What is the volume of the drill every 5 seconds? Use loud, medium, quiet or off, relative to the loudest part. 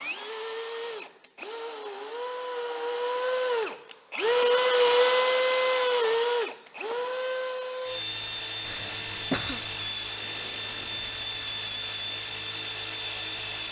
loud, loud, medium.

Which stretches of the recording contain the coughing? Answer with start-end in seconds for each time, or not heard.
8.7-9.9.